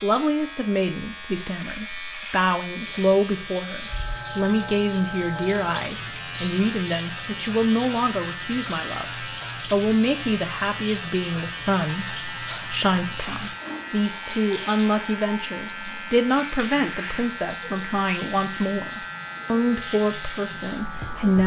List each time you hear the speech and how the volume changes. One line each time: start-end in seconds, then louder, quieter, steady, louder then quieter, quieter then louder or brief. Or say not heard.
0.0-21.4 steady.